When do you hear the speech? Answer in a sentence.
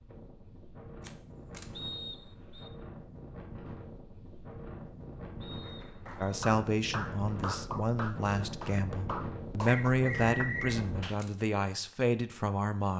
You can hear the speech from 6.2 to 12.9 s.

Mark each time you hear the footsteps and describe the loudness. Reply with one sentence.
You can't hear the footsteps here.